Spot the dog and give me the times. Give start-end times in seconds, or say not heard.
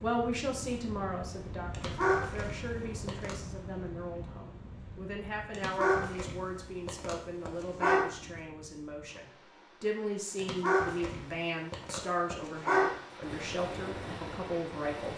1.7-3.4, 5.5-8.1, 10.3-12.9.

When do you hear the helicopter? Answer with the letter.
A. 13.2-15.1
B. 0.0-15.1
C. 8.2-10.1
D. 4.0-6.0
A.